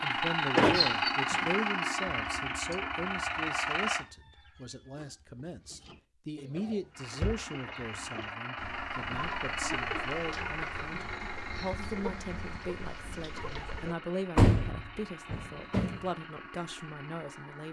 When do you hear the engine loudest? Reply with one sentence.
The loudest moment of the engine is at 1 second.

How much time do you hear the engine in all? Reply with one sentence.
The engine can be heard for 15 seconds in total.